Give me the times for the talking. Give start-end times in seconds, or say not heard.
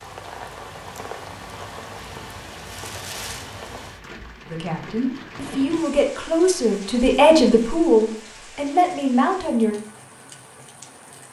4.5-9.8.